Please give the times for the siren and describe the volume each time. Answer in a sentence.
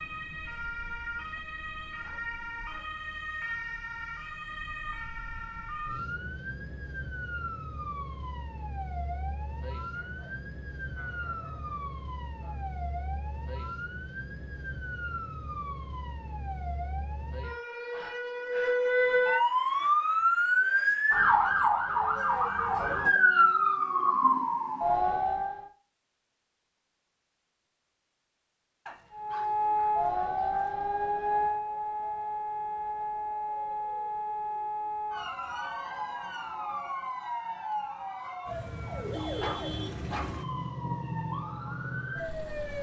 The siren can be heard from 0.0 to 25.7 s, getting louder; and from 29.1 to 42.7 s, getting quieter.